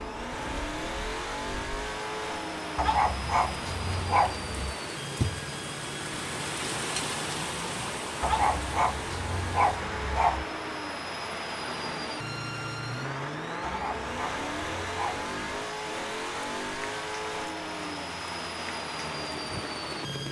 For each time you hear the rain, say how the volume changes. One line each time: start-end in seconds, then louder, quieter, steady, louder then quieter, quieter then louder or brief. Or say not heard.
0.0-20.2 louder then quieter.